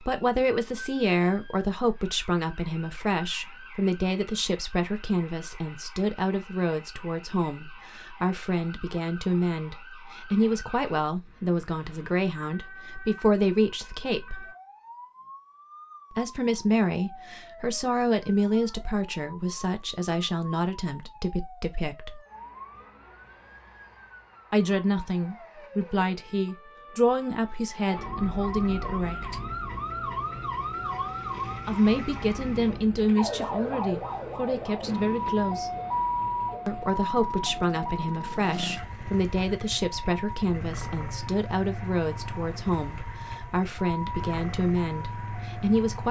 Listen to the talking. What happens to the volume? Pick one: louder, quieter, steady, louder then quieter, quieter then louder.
steady.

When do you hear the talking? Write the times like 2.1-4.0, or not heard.
0.0-14.5, 16.1-22.2, 24.5-29.4, 31.6-35.7, 36.6-46.0.